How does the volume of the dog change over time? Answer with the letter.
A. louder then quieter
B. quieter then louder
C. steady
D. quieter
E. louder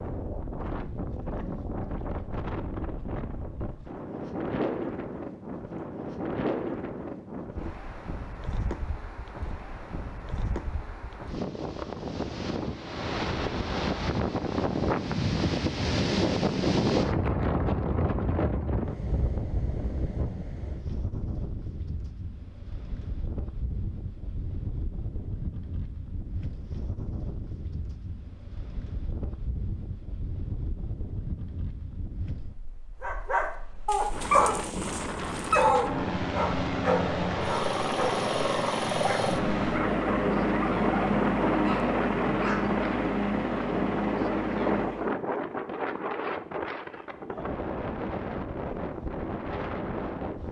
D.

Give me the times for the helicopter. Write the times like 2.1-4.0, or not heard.
35.7-45.1.